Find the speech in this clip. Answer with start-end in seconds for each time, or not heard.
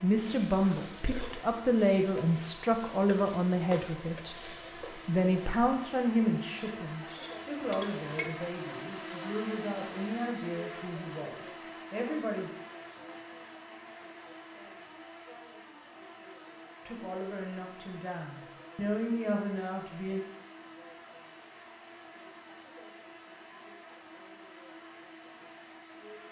0.0-4.3, 5.0-12.5, 16.9-20.2.